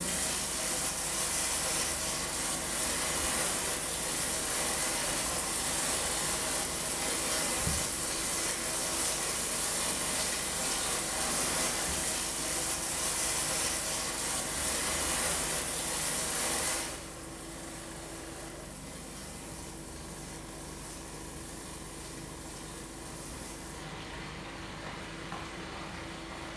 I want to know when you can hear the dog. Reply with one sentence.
You can't hear the dog here.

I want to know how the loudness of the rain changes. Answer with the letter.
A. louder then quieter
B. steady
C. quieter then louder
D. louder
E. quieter
E.